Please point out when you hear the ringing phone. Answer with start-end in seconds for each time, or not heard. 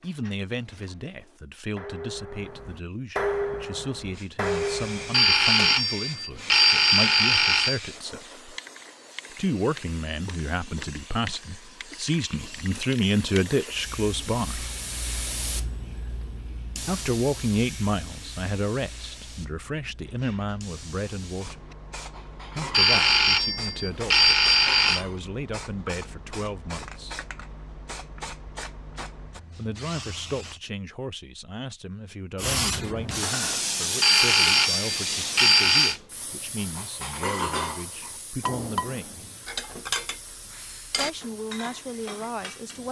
5.1-7.8, 22.7-25.1, 34.0-36.0.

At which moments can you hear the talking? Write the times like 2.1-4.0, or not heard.
0.0-8.6, 9.3-14.7, 16.9-21.6, 22.6-27.2, 29.6-39.2, 40.9-42.8.